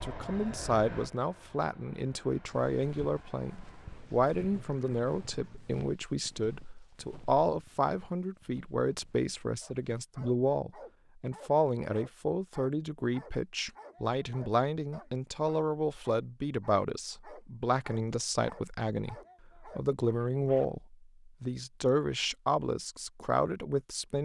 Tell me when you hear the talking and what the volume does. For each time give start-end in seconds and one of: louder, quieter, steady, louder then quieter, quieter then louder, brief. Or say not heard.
0.0-24.2 steady.